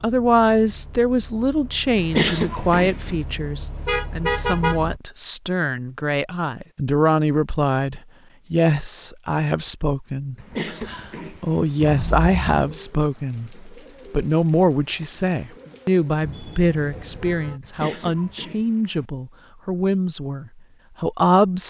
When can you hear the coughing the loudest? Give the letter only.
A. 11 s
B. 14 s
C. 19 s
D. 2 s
D.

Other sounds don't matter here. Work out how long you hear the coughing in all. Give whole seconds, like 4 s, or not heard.
4 s.